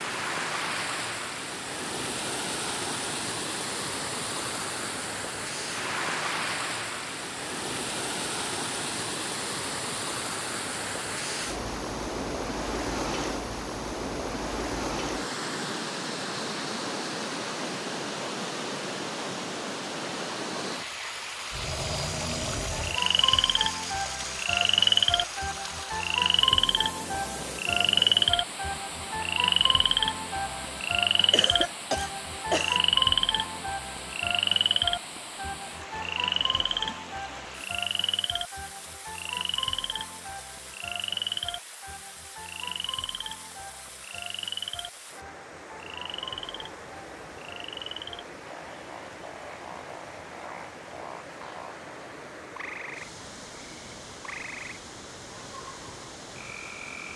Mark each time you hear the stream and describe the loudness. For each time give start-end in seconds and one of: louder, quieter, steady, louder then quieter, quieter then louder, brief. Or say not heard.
0.0-57.1 quieter.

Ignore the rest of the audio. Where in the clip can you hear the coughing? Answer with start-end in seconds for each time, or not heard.
31.3-32.8.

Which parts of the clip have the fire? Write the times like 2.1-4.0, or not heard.
not heard.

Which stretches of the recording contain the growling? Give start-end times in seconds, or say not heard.
21.5-23.0.